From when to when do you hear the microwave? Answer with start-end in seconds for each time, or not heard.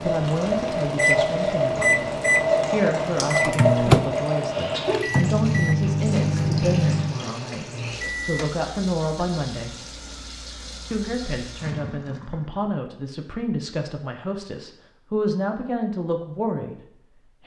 0.0-8.5.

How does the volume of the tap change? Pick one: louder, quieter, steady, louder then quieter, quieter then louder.
quieter.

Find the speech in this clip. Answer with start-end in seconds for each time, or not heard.
0.0-2.0, 2.7-9.8, 10.9-17.4.